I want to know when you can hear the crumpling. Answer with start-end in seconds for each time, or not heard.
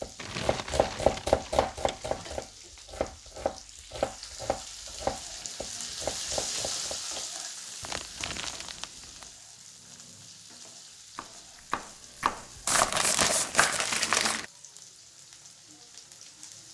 0.1-2.5, 7.8-9.2, 12.7-14.4.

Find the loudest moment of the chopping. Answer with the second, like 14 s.
1 s.